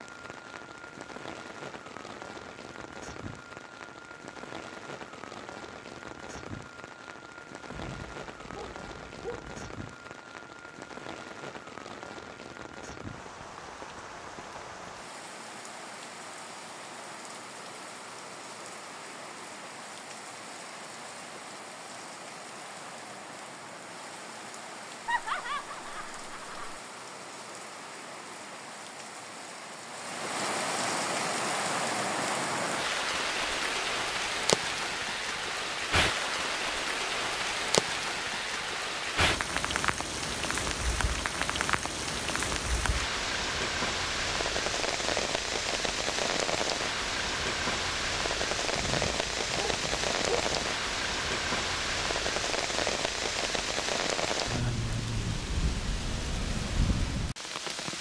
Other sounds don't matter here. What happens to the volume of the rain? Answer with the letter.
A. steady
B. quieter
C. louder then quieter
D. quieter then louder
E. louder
E.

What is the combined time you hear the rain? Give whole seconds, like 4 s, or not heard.
58 s.